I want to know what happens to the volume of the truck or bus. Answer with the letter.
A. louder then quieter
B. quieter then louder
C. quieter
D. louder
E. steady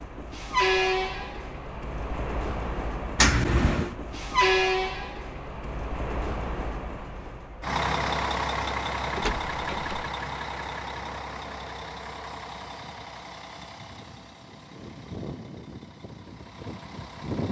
C.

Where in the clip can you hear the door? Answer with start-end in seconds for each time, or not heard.
3.1-4.0, 9.2-10.1.